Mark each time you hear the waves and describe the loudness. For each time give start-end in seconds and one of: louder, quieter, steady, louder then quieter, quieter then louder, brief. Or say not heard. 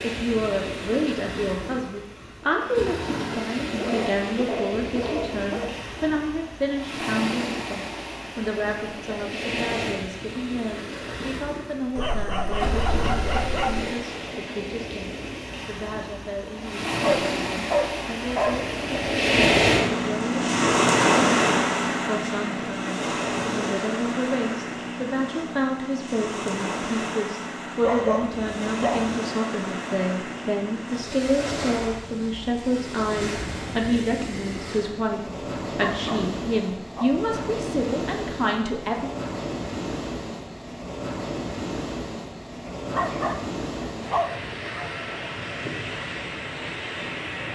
0.0-47.4 louder then quieter.